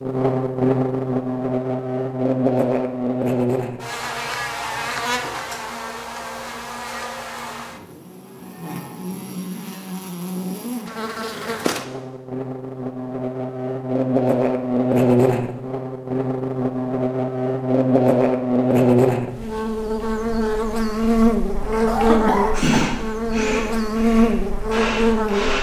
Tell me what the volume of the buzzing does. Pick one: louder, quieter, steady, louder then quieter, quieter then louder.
quieter then louder.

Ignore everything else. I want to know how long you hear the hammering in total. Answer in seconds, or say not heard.
not heard.